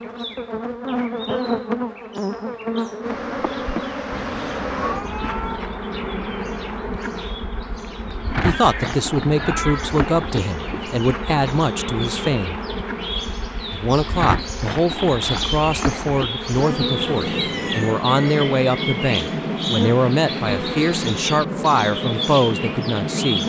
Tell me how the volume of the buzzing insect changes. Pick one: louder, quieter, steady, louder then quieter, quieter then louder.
steady.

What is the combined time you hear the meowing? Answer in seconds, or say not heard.
4 s.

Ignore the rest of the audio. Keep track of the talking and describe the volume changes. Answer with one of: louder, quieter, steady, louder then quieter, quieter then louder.
steady.